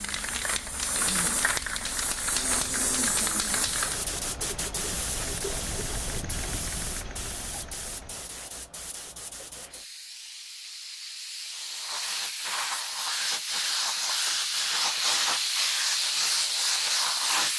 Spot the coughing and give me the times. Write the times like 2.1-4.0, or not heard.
not heard.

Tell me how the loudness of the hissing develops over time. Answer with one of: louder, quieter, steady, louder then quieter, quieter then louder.
quieter then louder.